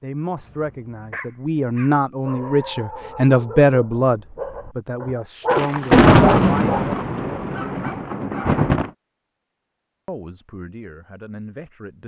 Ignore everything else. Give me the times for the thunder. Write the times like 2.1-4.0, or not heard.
5.5-8.9.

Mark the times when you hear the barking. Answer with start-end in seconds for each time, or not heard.
0.3-8.6.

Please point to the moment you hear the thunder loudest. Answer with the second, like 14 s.
6 s.